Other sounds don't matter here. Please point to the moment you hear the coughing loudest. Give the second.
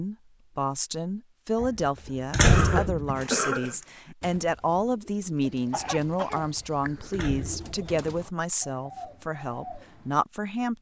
3 s.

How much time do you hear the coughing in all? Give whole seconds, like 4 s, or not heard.
3 s.